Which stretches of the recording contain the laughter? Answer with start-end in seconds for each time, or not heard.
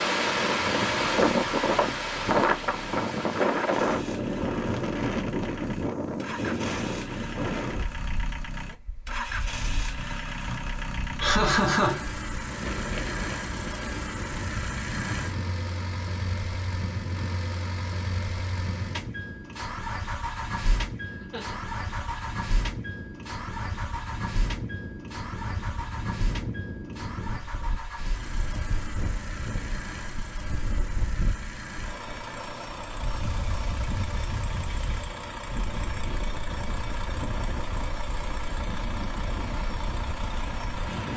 11.2-12.1, 21.2-22.2.